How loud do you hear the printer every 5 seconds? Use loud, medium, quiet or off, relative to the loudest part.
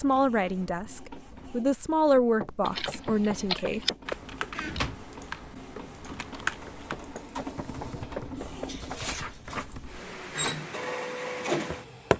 quiet, medium, loud.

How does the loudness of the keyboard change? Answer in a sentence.
The volume of the keyboard goes down.